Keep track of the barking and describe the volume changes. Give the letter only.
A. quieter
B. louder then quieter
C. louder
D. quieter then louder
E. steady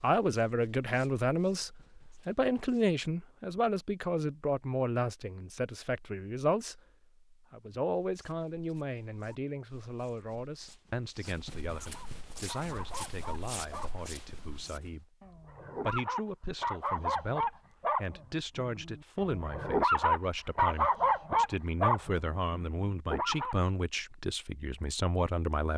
C.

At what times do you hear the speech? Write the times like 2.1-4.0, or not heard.
0.0-15.2, 15.8-25.7.